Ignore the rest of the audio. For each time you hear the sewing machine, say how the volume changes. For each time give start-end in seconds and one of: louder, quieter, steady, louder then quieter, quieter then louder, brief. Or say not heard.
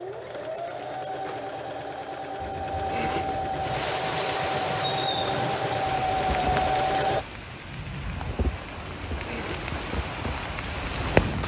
0.0-7.2 louder.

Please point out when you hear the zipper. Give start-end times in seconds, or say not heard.
2.4-3.8, 8.7-9.8.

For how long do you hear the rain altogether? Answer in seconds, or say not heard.
8 s.